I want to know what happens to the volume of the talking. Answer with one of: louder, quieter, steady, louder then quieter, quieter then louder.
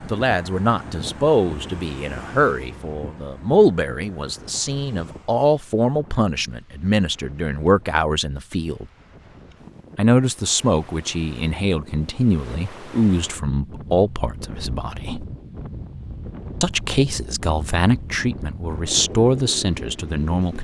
steady.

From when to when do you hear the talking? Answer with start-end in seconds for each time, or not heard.
0.0-8.8, 9.9-15.2, 16.6-20.6.